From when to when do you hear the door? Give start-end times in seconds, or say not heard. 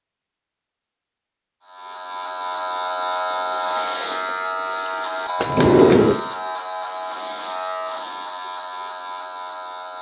5.4-6.2.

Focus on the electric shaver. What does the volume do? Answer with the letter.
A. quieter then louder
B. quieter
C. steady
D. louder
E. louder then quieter
B.